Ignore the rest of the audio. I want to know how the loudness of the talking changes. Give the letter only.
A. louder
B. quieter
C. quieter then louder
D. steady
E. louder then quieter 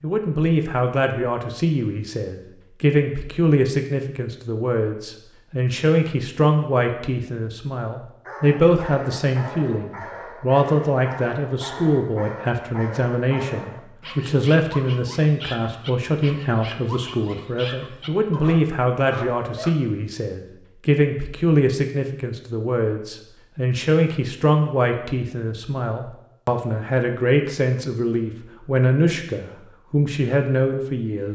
D.